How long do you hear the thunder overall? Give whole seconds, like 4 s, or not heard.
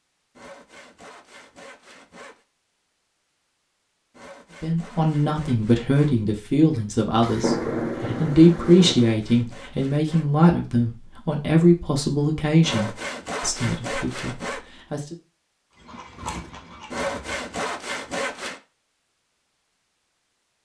2 s.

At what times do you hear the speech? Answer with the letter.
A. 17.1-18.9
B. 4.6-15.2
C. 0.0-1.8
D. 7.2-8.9
B.